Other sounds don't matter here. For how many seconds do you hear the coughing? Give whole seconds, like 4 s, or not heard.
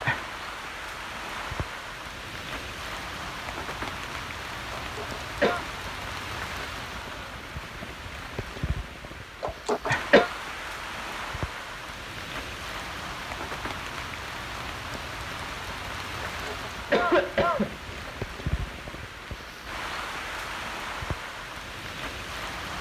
4 s.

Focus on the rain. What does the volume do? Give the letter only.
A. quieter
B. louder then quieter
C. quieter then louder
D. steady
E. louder
D.